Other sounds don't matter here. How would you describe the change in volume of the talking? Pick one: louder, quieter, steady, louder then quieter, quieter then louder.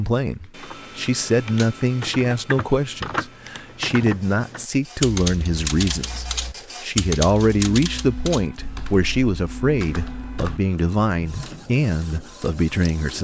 steady.